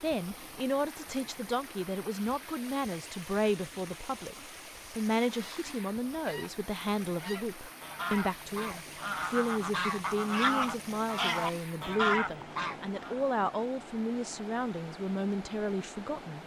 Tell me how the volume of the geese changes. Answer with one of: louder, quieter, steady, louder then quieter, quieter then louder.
louder.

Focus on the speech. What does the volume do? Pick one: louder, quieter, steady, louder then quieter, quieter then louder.
steady.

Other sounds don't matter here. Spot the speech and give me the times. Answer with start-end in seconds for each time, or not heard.
0.0-16.4.